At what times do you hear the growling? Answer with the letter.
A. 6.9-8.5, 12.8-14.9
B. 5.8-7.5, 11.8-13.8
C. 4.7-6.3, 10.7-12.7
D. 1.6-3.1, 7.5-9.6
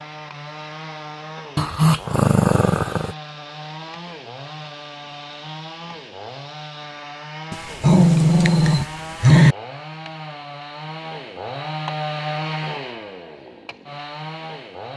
D.